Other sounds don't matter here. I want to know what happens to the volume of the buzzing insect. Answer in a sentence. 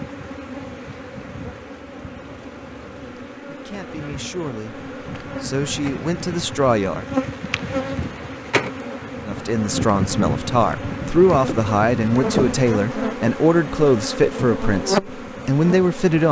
The volume of the buzzing insect goes up.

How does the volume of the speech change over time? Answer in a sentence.
The loudness of the speech goes up.